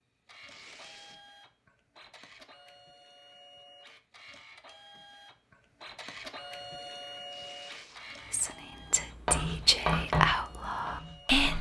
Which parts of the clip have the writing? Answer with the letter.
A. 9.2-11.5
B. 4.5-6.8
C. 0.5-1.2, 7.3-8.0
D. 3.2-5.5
A.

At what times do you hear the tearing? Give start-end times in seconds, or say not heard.
0.5-1.2, 7.3-8.0.